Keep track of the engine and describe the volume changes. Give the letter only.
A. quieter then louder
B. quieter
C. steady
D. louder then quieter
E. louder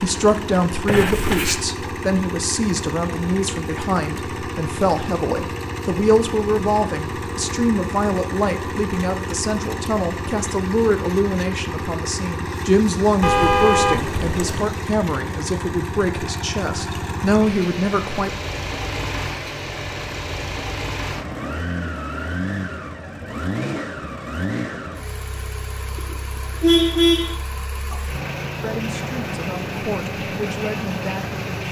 C.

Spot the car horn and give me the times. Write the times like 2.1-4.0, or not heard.
0.8-1.6, 13.2-14.7, 25.9-27.4.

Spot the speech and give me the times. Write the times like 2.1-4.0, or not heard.
0.0-18.4, 27.9-31.6.